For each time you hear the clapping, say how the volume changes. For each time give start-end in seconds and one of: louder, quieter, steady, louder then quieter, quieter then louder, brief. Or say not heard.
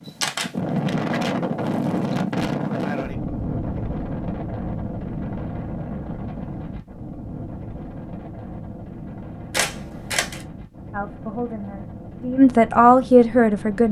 not heard.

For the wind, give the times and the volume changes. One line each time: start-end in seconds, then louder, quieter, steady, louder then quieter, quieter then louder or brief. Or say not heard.
0.0-13.8 quieter.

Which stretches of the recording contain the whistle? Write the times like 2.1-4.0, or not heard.
not heard.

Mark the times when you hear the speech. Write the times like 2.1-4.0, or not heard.
10.9-13.8.